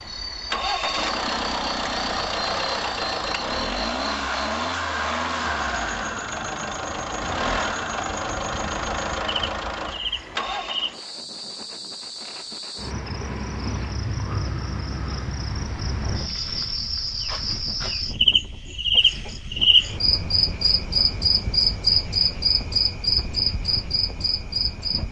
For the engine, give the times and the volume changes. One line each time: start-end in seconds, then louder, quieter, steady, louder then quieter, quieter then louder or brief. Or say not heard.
0.0-10.9 steady.